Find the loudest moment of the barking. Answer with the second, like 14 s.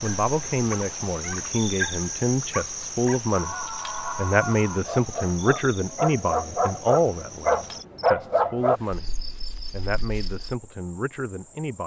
8 s.